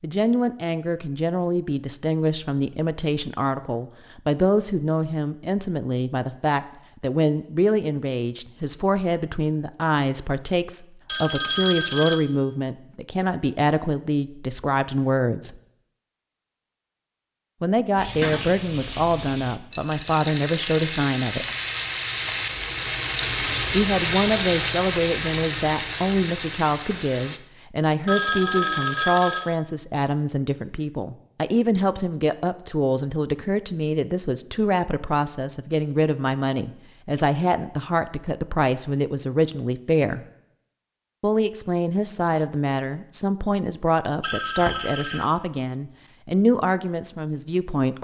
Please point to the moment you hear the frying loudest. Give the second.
24 s.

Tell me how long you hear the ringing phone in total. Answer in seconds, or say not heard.
4 s.